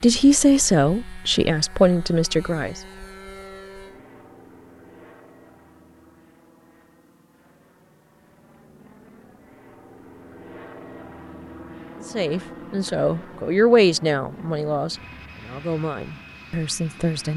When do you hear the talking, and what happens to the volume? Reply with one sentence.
The talking can be heard briefly from 0.0 to 2.8 s; and from 12.1 to 17.3 s, getting louder then quieter.